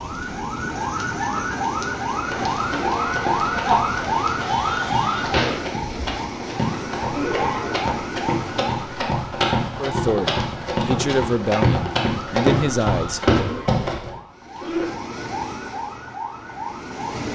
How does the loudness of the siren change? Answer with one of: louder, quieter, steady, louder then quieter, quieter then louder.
quieter.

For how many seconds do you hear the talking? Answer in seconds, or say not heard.
4 s.